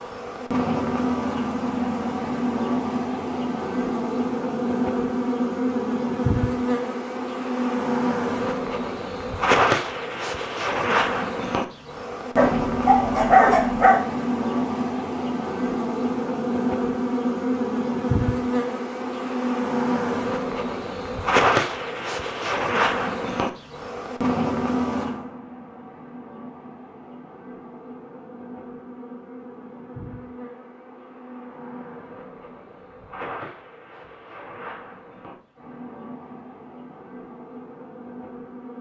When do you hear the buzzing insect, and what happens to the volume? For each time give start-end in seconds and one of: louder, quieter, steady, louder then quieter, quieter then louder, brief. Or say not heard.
0.0-38.7 quieter.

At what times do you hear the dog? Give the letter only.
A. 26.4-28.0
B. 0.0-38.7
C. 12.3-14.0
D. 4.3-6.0
C.